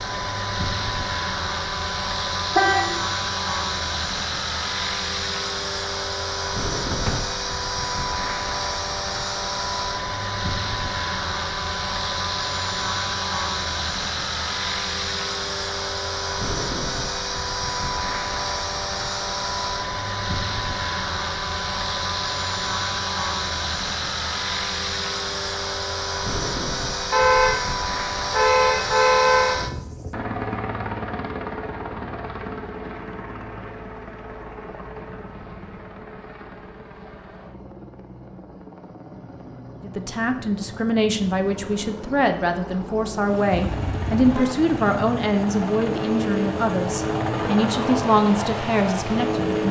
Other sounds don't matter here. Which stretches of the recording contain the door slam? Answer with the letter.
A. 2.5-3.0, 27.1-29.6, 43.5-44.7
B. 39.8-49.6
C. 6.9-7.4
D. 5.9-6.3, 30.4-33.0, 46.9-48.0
C.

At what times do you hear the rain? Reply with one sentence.
The rain can't be heard in this clip.